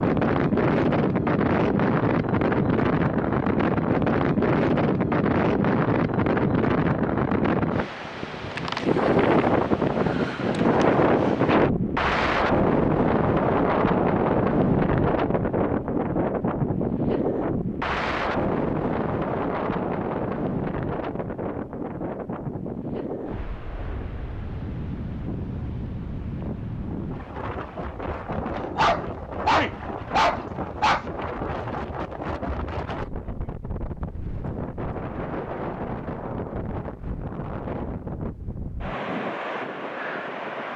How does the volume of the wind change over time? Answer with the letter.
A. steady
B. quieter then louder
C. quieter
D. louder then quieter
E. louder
C.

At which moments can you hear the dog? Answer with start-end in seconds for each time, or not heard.
28.6-31.1.